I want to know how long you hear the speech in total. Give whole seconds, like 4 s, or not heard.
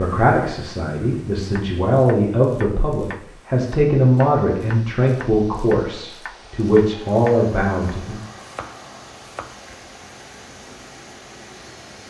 8 s.